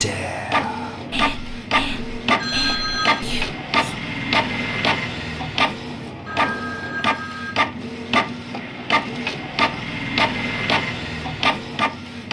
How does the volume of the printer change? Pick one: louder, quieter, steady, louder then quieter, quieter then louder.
steady.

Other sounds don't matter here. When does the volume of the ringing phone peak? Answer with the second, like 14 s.
3 s.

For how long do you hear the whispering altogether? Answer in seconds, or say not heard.
4 s.